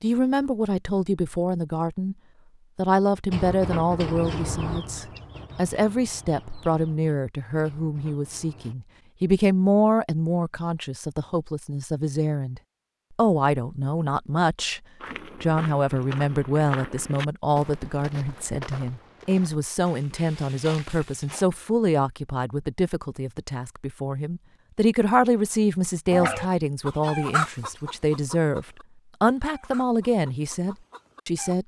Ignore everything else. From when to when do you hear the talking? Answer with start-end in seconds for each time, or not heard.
0.0-2.1, 2.8-14.8, 15.4-31.6.